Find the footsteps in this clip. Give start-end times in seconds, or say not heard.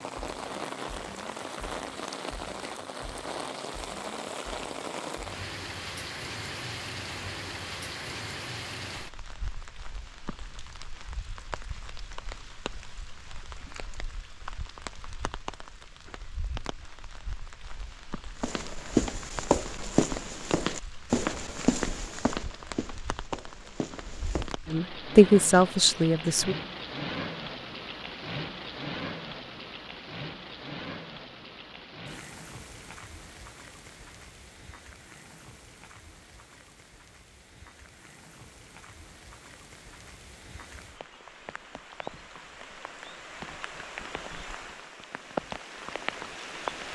18.4-24.5.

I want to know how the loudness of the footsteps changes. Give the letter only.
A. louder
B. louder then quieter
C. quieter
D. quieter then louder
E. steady
C.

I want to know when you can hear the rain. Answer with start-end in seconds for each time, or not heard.
0.0-46.9.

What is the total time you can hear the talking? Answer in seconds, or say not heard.
2 s.